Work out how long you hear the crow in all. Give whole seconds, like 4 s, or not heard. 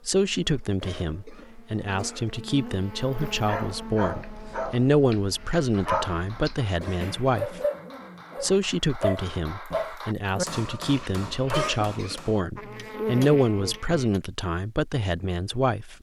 not heard.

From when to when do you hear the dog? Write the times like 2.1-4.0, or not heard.
3.1-11.8.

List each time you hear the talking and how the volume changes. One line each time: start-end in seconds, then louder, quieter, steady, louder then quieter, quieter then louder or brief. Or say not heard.
0.1-7.6 louder then quieter
8.4-15.9 louder then quieter.